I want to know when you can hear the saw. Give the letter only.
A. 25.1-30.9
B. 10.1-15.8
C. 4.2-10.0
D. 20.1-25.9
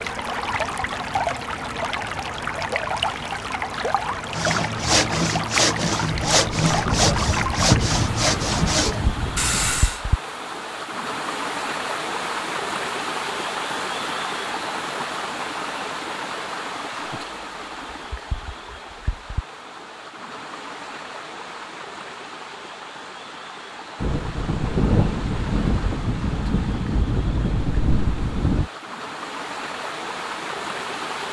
C.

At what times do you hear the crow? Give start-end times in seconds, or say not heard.
not heard.